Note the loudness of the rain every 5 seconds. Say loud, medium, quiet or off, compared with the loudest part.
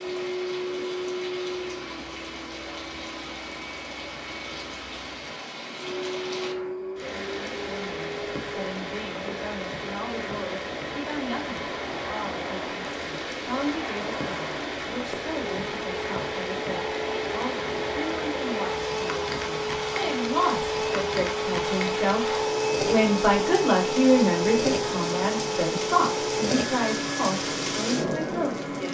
medium, medium, loud, loud, loud, loud.